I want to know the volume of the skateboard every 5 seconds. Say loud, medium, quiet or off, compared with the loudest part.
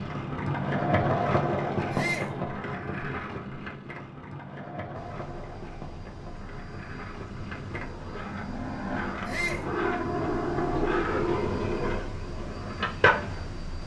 loud, medium, loud.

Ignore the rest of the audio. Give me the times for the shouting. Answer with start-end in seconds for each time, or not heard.
1.9-2.4, 9.2-9.7.